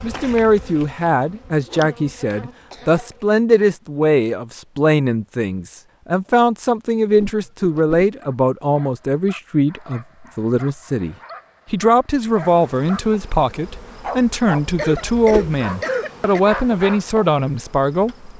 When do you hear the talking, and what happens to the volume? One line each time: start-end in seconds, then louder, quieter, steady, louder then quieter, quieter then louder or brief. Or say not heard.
0.0-18.3 steady.